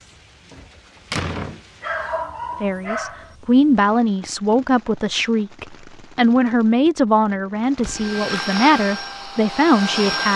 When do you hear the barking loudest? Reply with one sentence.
The loudest moment of the barking is at 2 seconds.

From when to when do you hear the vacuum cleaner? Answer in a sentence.
The vacuum cleaner can be heard from 7.8 to 10.3 s.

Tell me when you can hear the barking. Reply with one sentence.
You can hear the barking from 1.8 to 3.4 s.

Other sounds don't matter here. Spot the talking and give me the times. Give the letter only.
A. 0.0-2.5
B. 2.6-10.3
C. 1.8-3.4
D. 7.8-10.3
B.